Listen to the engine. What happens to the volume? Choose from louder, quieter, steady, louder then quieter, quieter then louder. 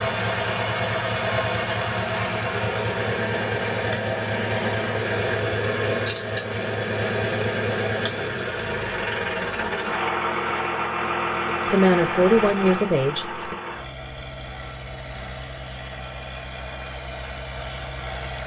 quieter.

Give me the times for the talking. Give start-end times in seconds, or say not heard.
11.7-13.6.